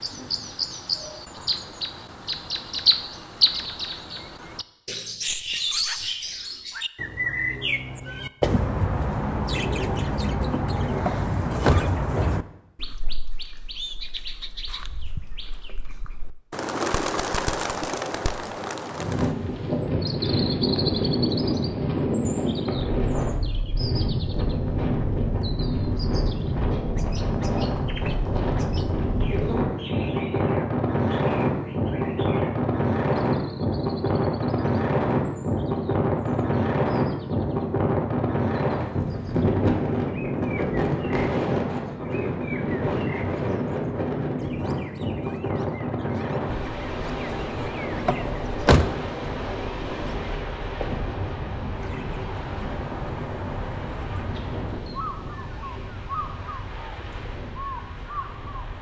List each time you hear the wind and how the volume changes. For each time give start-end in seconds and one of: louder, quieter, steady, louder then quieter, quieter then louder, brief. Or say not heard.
18.9-58.7 quieter.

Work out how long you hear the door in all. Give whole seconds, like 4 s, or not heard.
2 s.